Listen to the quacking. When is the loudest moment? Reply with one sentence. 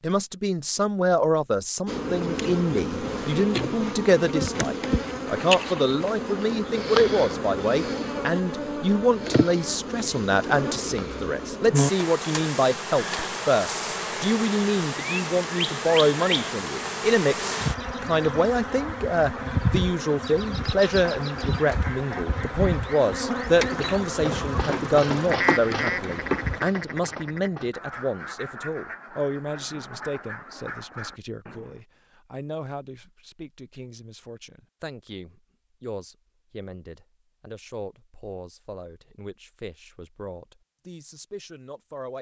The loudest moment of the quacking is at 25 seconds.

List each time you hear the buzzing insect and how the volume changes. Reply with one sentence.
The buzzing insect can be heard from 1.9 to 26.6 s, at a steady volume.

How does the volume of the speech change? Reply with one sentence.
The volume of the speech goes down.